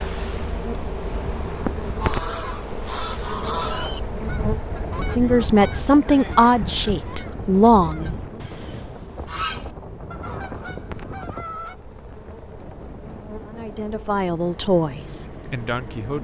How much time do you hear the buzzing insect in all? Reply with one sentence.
You can hear the buzzing insect for 16 seconds altogether.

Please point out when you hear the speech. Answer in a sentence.
The speech can be heard from 5.2 to 8.2 s and from 13.4 to 16.1 s.